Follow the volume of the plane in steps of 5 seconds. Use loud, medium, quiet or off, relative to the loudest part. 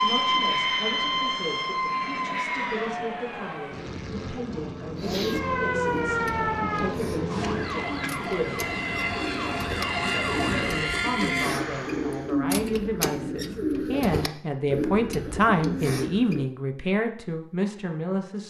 medium, loud, loud, off.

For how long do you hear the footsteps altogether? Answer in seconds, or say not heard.
not heard.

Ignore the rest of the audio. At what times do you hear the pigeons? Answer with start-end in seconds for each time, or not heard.
5.0-16.5.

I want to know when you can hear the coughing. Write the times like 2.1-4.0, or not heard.
not heard.